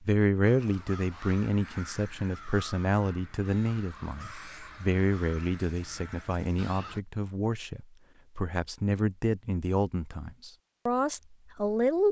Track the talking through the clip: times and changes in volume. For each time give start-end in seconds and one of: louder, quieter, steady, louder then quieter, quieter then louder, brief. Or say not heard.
0.0-12.0 steady.